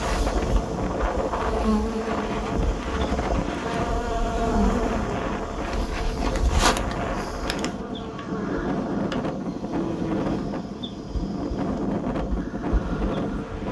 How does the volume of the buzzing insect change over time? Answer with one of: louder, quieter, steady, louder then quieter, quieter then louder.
quieter.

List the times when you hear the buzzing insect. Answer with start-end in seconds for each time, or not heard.
0.0-13.6.